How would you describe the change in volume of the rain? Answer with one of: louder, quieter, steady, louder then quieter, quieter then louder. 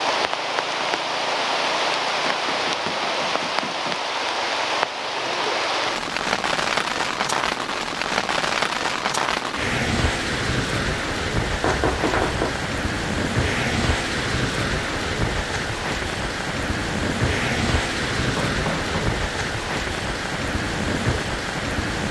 steady.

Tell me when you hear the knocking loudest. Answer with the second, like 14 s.
12 s.